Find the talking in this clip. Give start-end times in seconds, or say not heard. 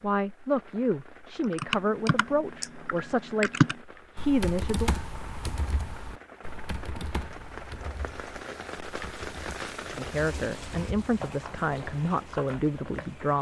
0.0-4.9, 9.9-13.3.